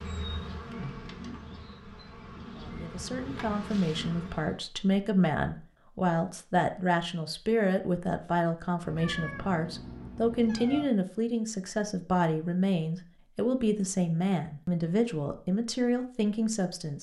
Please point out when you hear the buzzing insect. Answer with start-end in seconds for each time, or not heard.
0.0-4.6.